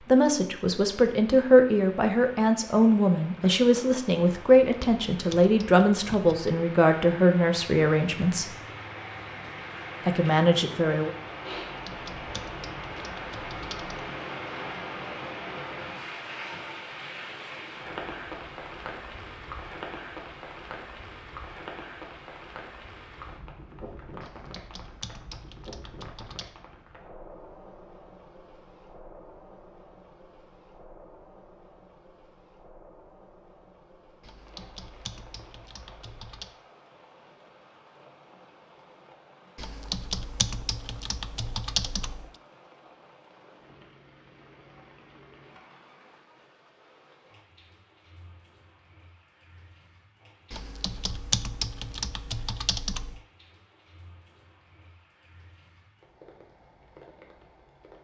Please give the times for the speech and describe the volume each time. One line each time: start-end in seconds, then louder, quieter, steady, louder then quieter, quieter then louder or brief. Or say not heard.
0.0-8.6 steady
10.1-11.1 brief.